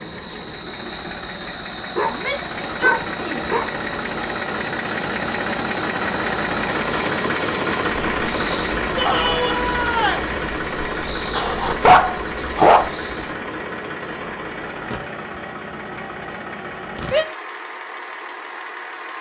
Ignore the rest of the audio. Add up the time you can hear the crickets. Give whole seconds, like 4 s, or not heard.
13 s.